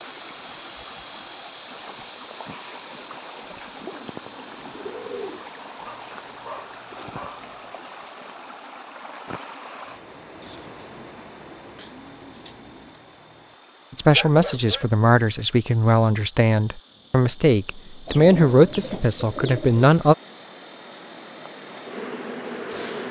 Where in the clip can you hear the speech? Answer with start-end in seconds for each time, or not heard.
13.9-20.1.